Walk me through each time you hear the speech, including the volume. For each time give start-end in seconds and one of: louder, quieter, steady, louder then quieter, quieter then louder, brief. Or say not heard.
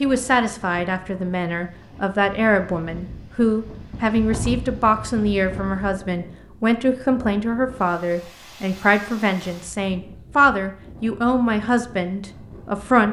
0.0-13.0 steady.